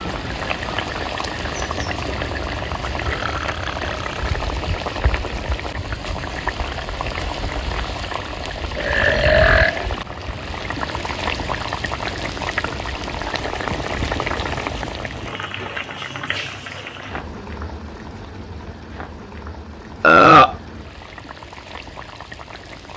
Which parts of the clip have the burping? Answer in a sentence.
The burping can be heard from 3.0 to 4.3 s, from 8.8 to 10.3 s and from 20.0 to 20.6 s.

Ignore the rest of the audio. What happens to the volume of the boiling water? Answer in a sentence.
The volume of the boiling water goes down.